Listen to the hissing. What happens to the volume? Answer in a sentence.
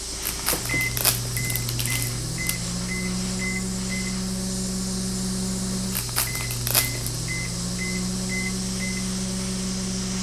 The volume of the hissing stays about the same.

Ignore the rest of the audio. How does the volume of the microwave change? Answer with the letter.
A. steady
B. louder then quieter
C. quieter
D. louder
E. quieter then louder
A.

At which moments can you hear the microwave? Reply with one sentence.
You can hear the microwave from 0.0 to 10.1 s.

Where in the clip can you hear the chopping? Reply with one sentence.
You can't hear the chopping here.